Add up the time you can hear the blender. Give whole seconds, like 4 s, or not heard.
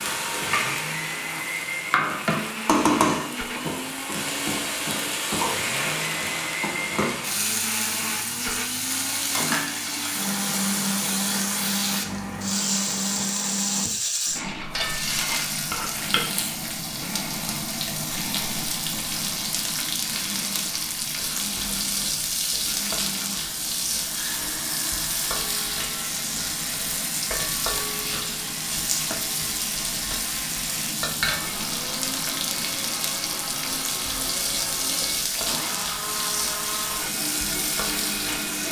38 s.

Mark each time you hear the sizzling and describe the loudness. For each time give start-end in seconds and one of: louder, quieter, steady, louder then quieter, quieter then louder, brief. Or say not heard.
0.0-38.6 steady.